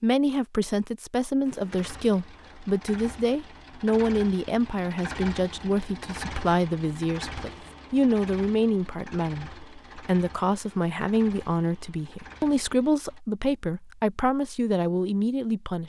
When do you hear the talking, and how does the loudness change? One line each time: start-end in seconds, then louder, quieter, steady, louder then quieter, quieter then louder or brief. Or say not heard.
0.0-15.8 steady.